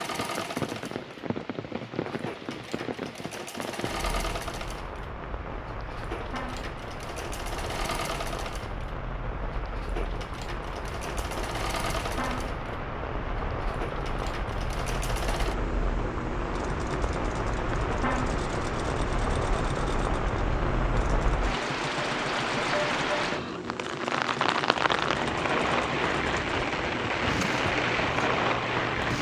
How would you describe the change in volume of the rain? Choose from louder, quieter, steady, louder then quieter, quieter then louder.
louder.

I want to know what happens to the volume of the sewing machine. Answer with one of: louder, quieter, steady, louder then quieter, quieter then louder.
steady.